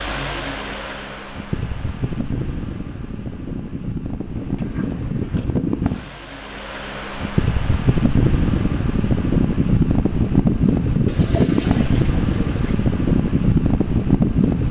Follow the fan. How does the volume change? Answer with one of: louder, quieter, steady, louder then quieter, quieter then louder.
louder.